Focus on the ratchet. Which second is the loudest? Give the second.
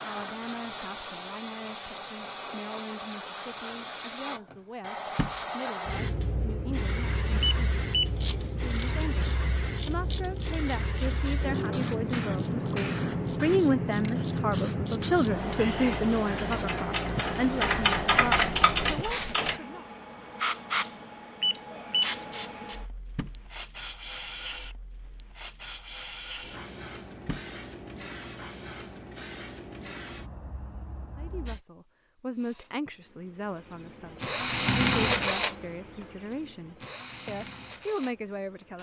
18 s.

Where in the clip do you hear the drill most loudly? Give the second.
35 s.